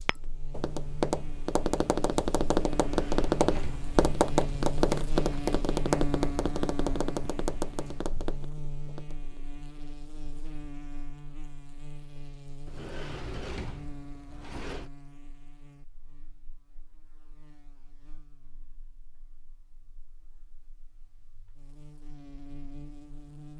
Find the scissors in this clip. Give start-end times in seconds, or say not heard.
not heard.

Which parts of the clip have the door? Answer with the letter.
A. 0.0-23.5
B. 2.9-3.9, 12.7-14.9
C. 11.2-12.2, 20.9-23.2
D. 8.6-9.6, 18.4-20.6
B.